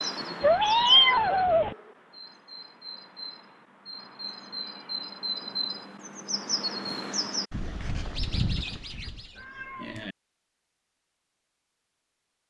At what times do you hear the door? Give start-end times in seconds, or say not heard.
not heard.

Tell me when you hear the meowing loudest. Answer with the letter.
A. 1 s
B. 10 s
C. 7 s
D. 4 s
A.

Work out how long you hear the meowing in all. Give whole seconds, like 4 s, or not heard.
2 s.